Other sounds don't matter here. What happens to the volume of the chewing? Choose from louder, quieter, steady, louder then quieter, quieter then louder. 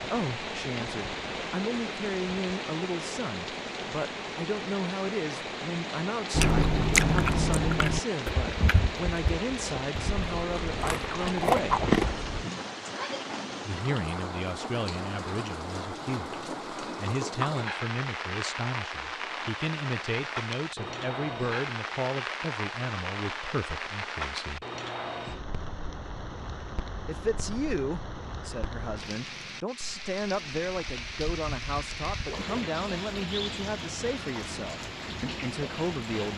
quieter then louder.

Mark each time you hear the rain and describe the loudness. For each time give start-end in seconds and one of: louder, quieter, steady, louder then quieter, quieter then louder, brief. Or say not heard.
0.0-36.3 steady.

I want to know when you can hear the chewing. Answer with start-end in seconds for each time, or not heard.
6.3-12.4.